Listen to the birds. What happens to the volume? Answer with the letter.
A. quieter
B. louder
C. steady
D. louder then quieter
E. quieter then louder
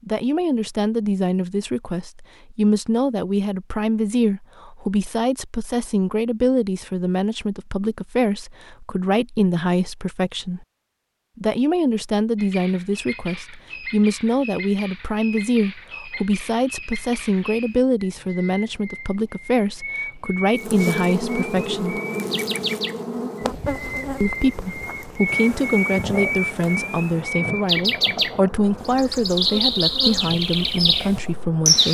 B.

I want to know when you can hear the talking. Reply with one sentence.
The talking can be heard from 0.1 to 10.7 s, from 11.3 to 22.0 s and from 24.2 to 31.8 s.